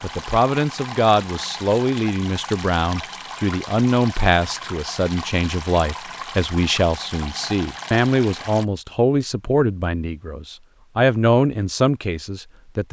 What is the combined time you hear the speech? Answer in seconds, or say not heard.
13 s.